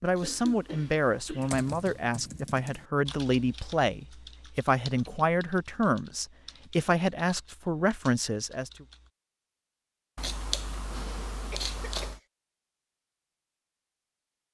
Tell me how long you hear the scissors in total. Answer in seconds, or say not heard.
4 s.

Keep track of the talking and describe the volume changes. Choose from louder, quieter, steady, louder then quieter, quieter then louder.
steady.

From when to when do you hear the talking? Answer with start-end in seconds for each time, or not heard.
0.0-8.8.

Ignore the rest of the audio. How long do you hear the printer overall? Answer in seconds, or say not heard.
not heard.